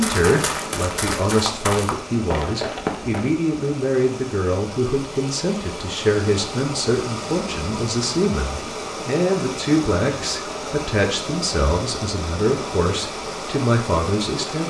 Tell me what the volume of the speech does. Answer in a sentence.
The loudness of the speech stays about the same.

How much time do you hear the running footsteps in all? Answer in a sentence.
You can hear the running footsteps for 3 seconds altogether.